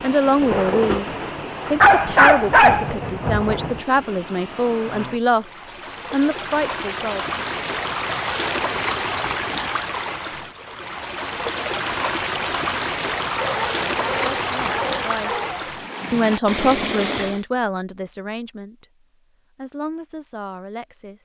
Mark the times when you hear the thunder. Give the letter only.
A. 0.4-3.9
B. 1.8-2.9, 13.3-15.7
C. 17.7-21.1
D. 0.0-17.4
A.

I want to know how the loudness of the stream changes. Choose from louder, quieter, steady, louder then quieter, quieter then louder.
louder.